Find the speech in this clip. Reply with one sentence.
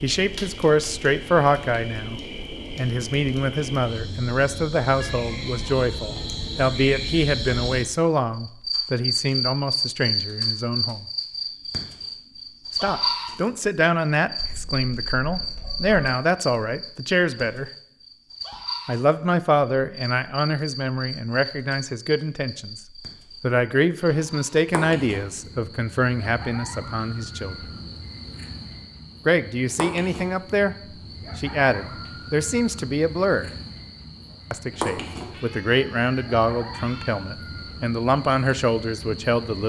You can hear the speech from 0.0 to 11.1 s, from 12.8 to 17.7 s, from 18.9 to 27.7 s, from 29.2 to 30.8 s, from 31.4 to 33.5 s and from 34.5 to 39.6 s.